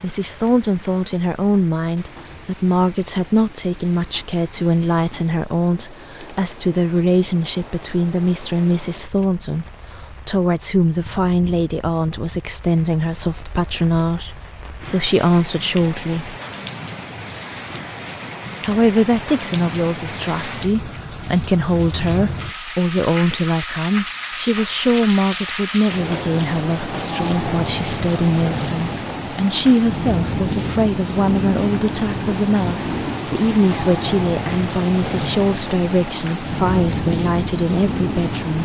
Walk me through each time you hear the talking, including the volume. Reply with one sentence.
The talking can be heard from 0.0 to 16.4 s, at a steady volume; and from 18.6 to 38.6 s, at a steady volume.